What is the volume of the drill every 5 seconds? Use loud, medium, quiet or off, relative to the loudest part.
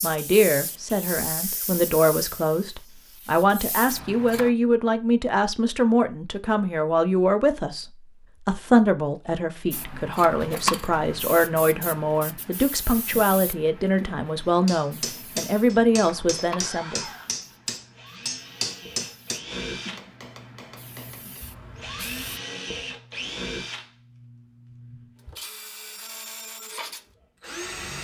off, off, off, loud, loud, loud.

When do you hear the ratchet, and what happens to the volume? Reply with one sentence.
You can't hear the ratchet here.